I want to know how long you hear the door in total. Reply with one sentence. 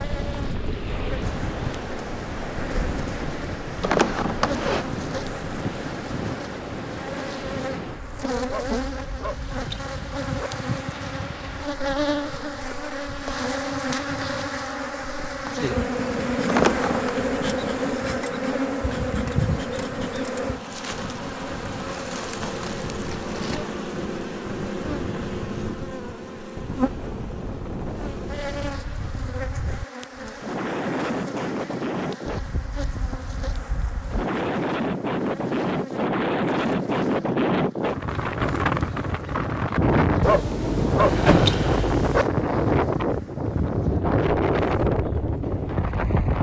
You can hear the door for 3 seconds altogether.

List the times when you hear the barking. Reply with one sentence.
You can hear the barking from 8.4 to 10.5 s and from 40.2 to 42.2 s.